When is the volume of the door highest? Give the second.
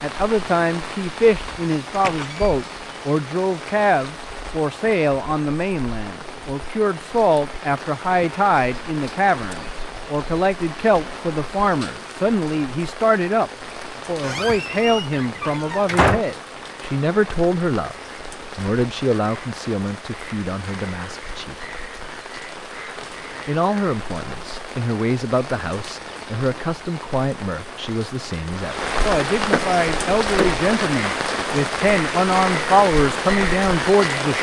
16 s.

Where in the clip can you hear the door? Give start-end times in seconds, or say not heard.
1.9-2.6, 14.2-16.2, 29.4-30.6.